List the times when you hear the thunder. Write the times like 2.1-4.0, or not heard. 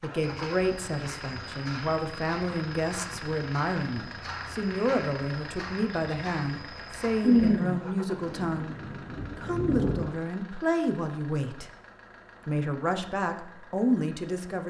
7.2-10.1.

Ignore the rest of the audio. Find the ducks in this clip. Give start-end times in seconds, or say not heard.
not heard.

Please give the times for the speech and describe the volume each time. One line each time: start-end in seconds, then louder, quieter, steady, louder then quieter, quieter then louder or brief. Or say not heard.
0.0-11.7 steady
12.4-14.6 brief.